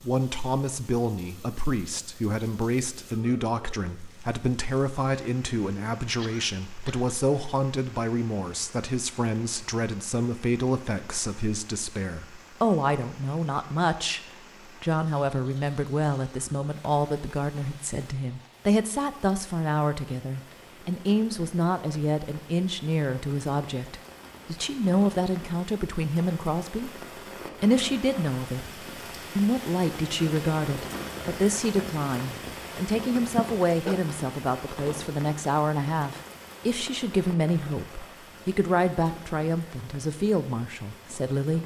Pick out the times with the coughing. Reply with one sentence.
You can hear the coughing from 6.2 to 7.1 s and from 33.4 to 34.0 s.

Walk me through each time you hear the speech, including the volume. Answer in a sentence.
The speech can be heard from 0.1 to 14.2 s, at a steady volume; from 14.8 to 26.9 s, at a steady volume; and from 27.6 to 41.6 s, at a steady volume.